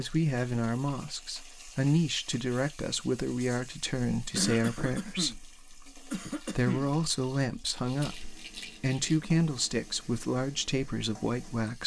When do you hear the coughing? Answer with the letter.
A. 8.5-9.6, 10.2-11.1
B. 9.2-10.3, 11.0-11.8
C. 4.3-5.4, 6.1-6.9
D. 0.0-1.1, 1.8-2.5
C.